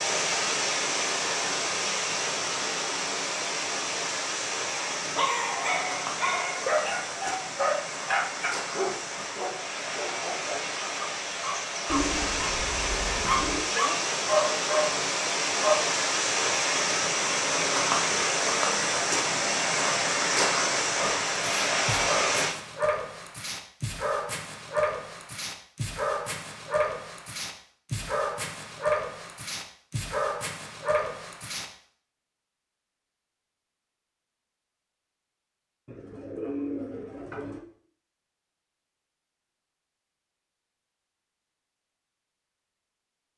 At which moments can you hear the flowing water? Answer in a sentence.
You can hear the flowing water from 0.0 to 22.6 s.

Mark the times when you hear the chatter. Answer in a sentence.
You can't hear the chatter here.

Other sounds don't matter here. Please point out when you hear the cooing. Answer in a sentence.
You can hear the cooing from 11.8 to 13.7 s and from 35.9 to 37.6 s.